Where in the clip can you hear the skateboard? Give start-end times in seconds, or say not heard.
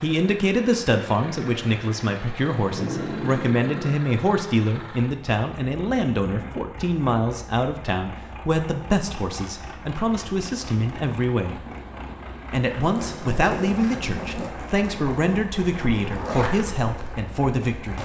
12.8-18.0.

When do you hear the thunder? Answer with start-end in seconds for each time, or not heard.
2.5-4.0.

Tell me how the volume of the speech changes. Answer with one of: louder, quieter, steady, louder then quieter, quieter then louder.
steady.